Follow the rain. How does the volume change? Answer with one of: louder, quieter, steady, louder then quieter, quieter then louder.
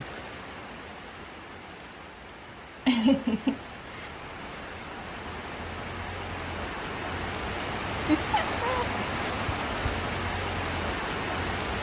louder.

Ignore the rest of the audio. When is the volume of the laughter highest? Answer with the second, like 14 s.
3 s.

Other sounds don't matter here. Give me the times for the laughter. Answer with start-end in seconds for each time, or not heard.
2.9-4.1, 8.1-8.8.